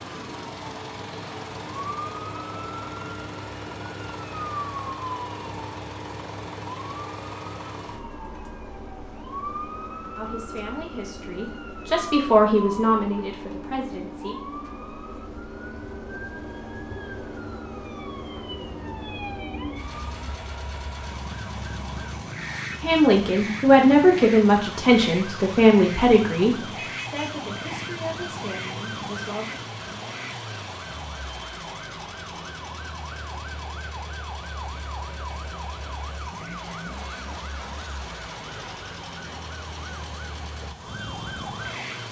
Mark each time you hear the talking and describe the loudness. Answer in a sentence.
You can hear the talking from 10.2 to 14.3 s, getting louder then quieter; and from 22.8 to 29.6 s, getting quieter.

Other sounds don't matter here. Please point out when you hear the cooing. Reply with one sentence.
You can't hear the cooing here.